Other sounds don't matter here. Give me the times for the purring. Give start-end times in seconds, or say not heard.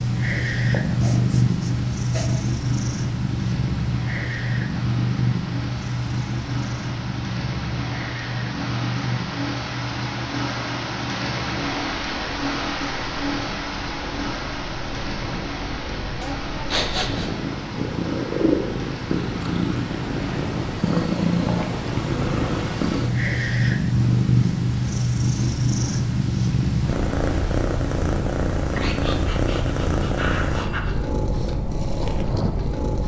0.0-33.0.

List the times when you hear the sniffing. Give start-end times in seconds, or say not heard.
0.7-2.3, 16.2-17.3, 28.7-30.9.